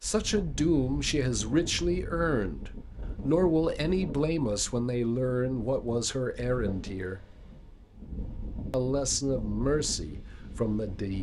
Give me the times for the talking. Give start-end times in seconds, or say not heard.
0.0-7.2, 8.7-11.1.